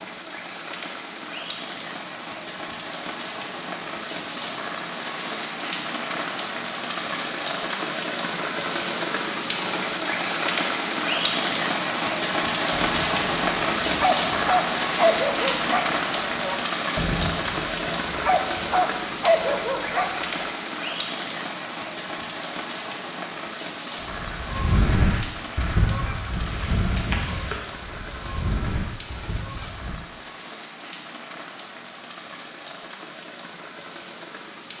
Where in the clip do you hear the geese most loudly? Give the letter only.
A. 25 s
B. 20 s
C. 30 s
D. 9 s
A.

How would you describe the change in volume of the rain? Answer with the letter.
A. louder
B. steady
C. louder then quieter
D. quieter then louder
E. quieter
C.